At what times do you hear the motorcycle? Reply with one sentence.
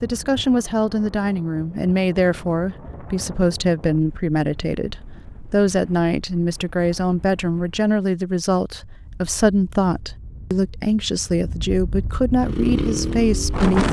The motorcycle can be heard from 12.4 to 13.8 s.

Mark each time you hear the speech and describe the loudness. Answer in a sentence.
You can hear the speech from 0.0 to 13.8 s, at a steady volume.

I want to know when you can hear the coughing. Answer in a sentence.
You can't hear the coughing here.